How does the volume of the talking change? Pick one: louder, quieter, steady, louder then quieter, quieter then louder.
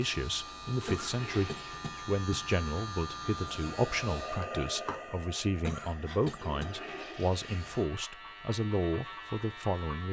steady.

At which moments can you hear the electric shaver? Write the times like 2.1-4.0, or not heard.
0.0-4.5, 7.3-10.0.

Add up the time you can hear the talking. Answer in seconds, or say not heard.
10 s.